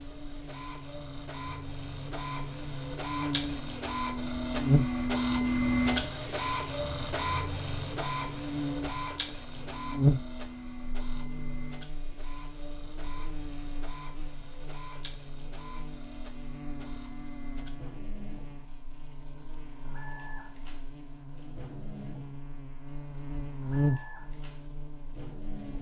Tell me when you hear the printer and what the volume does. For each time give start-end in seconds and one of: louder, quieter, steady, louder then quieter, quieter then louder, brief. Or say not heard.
0.0-25.7 quieter.